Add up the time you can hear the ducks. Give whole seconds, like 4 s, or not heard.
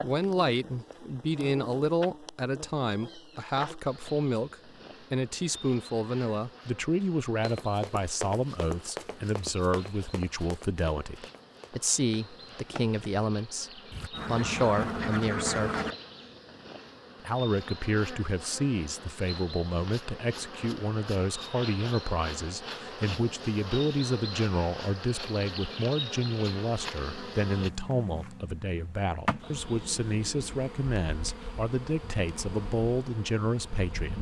2 s.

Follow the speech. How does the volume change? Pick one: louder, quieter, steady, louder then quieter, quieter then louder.
steady.